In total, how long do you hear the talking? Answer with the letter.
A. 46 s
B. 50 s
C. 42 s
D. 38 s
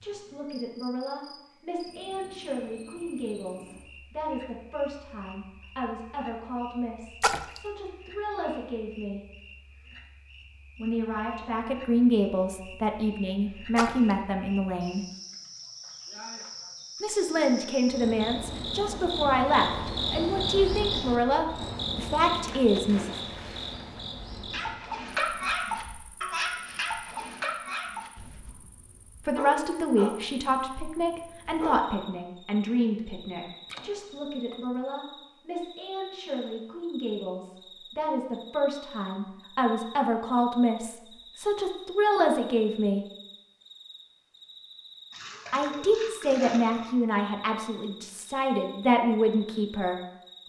D.